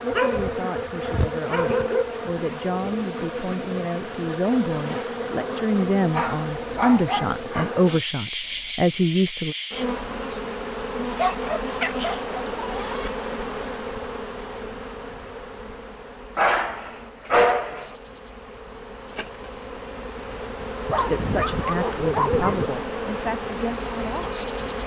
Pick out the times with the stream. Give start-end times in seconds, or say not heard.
not heard.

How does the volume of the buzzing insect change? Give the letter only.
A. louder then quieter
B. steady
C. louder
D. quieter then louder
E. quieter
D.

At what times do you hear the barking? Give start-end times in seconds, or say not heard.
0.1-2.0, 6.1-7.3, 11.2-13.1, 16.4-17.9, 20.9-22.7.